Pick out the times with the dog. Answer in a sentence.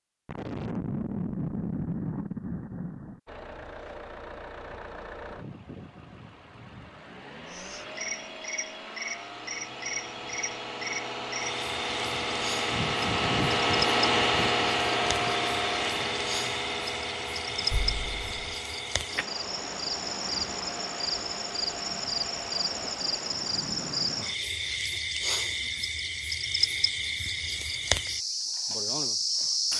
The dog can't be heard in this clip.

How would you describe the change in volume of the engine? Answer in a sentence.
The volume of the engine goes up, then down.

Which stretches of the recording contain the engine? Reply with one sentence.
The engine can be heard from 3.2 to 24.2 s.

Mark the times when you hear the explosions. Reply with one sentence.
You can hear the explosions from 0.2 to 3.2 s and from 17.7 to 18.6 s.